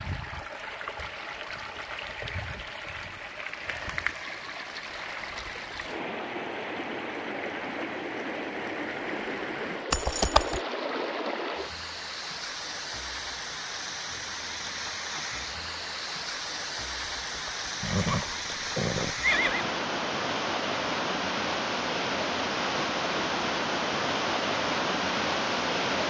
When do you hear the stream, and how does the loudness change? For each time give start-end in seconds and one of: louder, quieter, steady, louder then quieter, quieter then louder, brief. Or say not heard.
0.0-26.0 louder.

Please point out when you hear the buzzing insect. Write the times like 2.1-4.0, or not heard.
not heard.